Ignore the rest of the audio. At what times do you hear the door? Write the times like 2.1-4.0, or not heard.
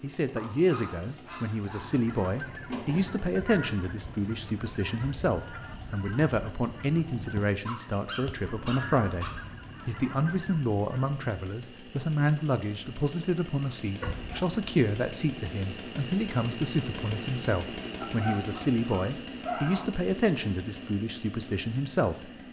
2.7-3.3.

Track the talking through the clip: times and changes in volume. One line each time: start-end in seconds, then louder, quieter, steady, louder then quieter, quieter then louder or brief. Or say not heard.
0.0-22.3 steady.